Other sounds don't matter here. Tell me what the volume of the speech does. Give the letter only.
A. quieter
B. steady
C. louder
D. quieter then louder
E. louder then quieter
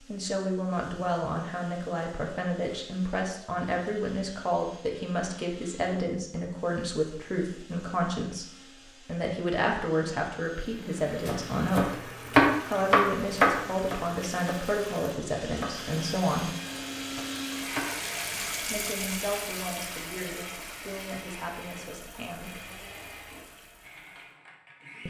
A.